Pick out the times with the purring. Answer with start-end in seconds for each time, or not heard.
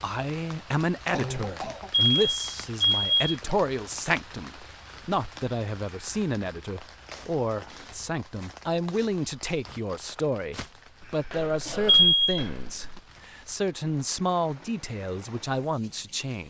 not heard.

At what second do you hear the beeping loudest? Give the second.
12 s.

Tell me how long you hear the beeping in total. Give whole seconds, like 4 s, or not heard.
2 s.